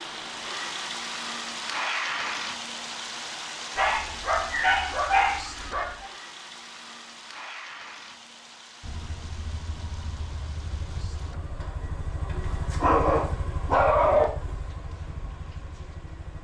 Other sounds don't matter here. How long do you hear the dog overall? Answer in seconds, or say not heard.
4 s.